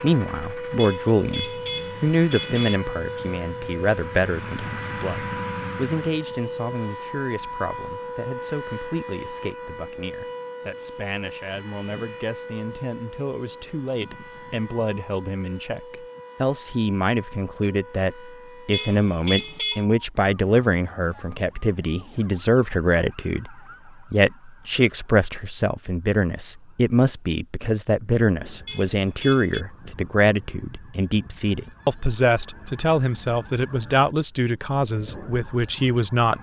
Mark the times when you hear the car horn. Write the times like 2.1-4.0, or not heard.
0.8-2.8, 18.7-19.9, 28.6-29.6.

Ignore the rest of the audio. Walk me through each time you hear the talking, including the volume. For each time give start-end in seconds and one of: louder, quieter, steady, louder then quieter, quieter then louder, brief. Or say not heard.
0.0-36.3 quieter then louder.